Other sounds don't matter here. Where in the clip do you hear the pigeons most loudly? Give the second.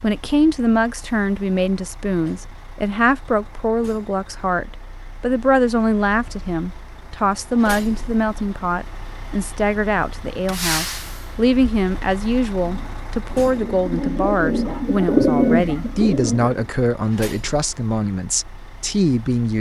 15 s.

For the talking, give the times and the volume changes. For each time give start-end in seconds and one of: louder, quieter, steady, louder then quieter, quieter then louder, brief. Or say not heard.
0.0-19.5 steady.